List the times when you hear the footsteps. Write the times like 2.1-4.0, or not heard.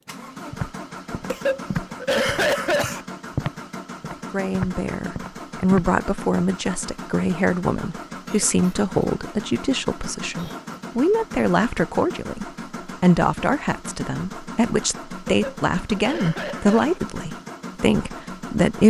0.5-5.8.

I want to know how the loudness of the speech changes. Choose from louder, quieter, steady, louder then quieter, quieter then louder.
steady.